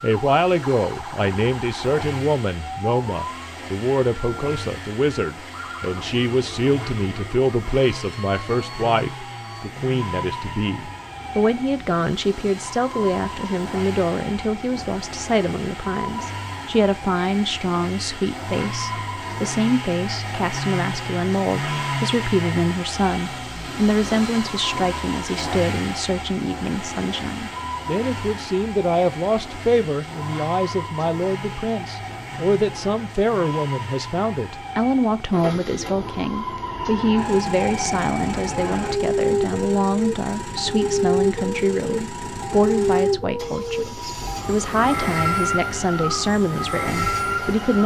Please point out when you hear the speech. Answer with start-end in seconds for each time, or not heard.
0.0-47.8.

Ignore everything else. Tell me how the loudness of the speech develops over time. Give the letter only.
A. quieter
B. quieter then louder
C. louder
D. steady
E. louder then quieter
D.